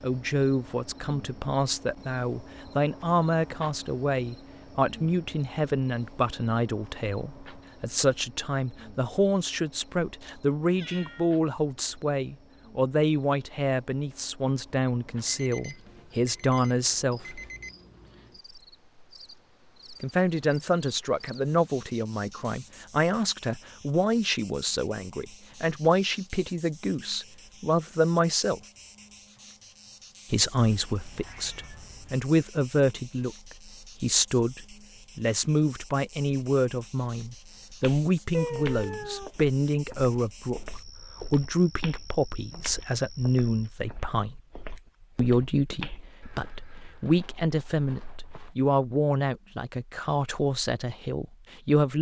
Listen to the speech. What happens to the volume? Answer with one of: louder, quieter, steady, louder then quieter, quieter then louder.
steady.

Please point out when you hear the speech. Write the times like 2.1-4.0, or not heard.
0.0-17.4, 20.0-28.6, 30.3-44.4, 45.1-51.9.